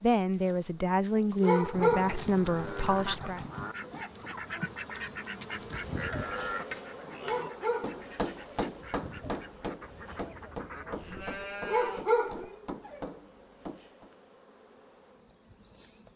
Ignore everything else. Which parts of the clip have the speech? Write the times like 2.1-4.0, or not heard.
0.0-3.5.